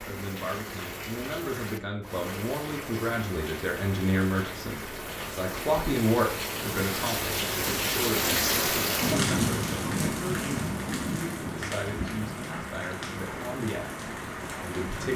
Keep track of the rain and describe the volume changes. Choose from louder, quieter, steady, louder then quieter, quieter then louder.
louder then quieter.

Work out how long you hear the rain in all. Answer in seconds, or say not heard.
15 s.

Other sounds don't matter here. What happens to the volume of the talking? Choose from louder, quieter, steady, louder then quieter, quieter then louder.
louder then quieter.